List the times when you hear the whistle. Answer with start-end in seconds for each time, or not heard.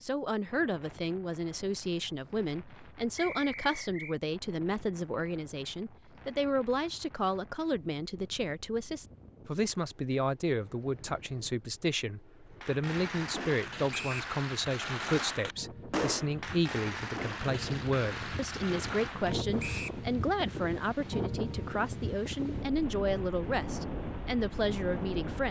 3.1-4.2, 13.9-14.3, 19.6-20.0.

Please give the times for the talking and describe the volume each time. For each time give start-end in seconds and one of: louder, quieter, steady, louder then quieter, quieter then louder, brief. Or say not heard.
0.0-25.4 steady.